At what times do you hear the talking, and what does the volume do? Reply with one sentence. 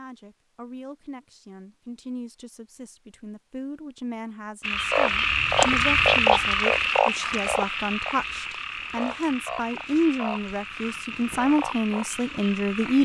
You can hear the talking from 0.0 to 13.0 s, getting louder.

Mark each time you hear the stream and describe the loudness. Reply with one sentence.
The stream can't be heard in this clip.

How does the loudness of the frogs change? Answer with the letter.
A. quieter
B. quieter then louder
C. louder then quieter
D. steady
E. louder
A.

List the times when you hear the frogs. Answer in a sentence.
The frogs can be heard from 4.6 to 13.0 s.